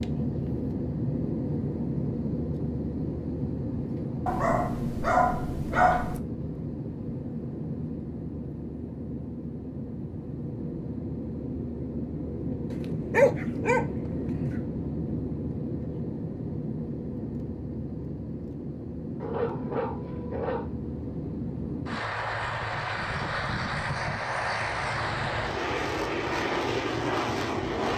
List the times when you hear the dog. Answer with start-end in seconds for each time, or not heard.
4.2-6.2, 12.7-13.8, 19.2-20.7.